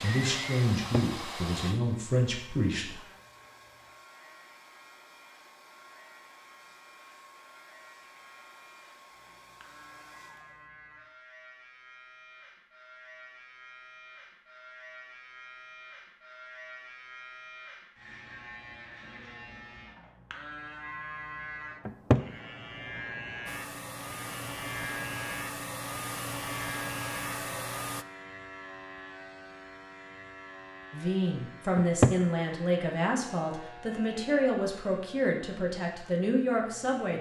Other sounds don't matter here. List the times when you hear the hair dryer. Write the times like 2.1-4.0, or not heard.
0.0-10.7, 23.4-28.1.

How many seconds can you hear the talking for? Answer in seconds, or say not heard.
9 s.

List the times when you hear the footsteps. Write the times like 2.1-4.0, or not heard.
not heard.